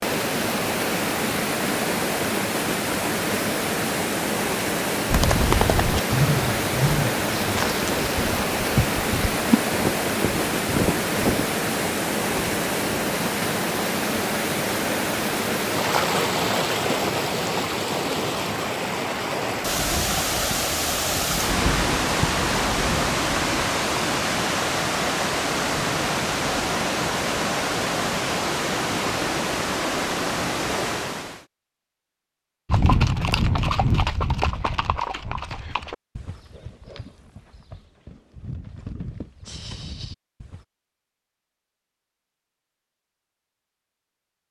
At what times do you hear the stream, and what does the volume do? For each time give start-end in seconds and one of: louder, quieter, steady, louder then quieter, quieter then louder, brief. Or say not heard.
0.0-31.4 steady.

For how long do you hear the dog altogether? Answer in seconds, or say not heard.
not heard.